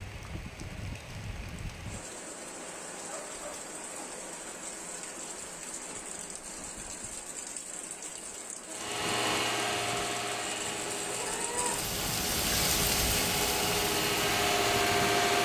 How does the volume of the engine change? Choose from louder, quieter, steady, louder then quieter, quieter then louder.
quieter then louder.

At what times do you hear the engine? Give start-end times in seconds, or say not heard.
8.7-15.3.